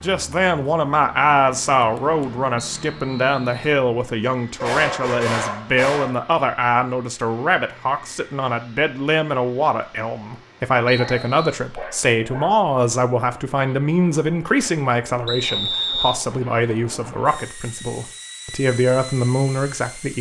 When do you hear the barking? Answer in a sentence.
You can hear the barking from 4.6 to 6.2 s and from 10.9 to 12.5 s.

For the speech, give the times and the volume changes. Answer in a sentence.
You can hear the speech from 0.0 to 20.1 s, at a steady volume.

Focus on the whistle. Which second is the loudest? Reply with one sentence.
The volume of the whistle peaks at 16 seconds.